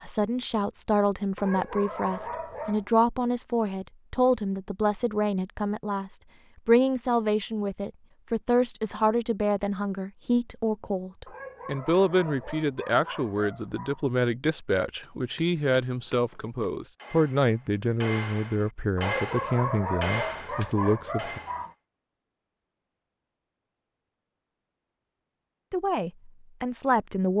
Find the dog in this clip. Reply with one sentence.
The dog can be heard from 1.4 to 2.9 s, from 11.2 to 14.1 s and from 18.9 to 21.8 s.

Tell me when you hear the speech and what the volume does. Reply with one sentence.
You can hear the speech from 0.0 to 21.4 s, at a steady volume; and briefly from 25.7 to 27.3 s.